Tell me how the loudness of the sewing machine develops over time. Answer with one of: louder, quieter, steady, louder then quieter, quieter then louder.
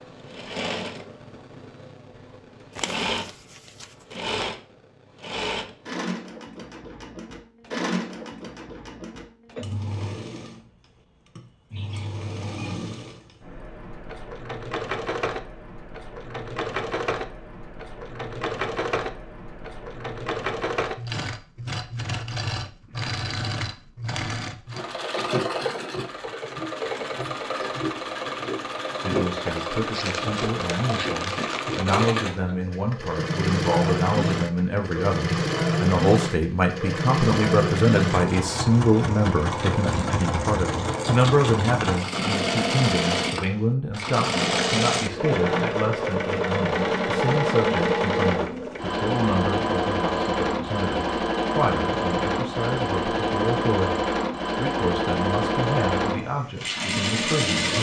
louder.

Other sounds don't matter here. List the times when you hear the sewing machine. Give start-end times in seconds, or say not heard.
0.0-57.7.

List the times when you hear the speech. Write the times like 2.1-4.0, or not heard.
29.0-57.7.